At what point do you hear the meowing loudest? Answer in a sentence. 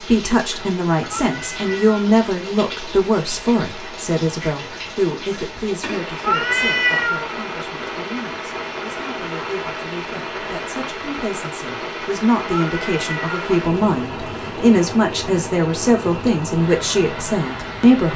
The volume of the meowing peaks at 7 seconds.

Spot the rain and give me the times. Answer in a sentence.
The rain can be heard from 0.0 to 18.1 s.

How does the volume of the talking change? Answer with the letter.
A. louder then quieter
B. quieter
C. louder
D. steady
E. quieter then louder
E.